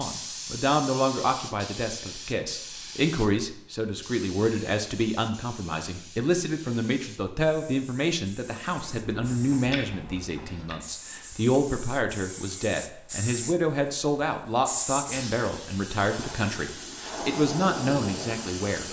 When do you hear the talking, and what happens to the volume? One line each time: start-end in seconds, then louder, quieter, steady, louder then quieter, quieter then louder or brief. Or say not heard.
0.0-18.8 steady.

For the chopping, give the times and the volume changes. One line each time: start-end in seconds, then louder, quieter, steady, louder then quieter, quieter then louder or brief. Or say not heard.
not heard.